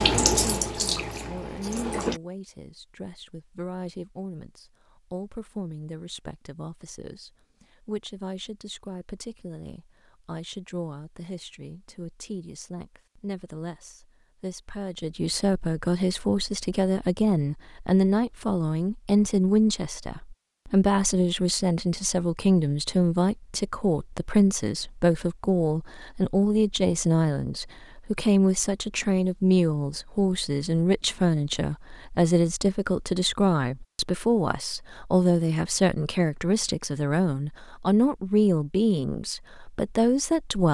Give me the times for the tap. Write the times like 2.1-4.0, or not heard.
0.0-2.2.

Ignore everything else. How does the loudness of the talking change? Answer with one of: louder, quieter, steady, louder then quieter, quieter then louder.
louder.